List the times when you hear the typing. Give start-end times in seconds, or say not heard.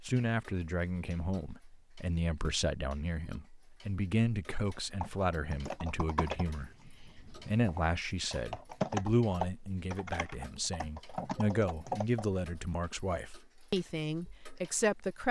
4.5-12.2.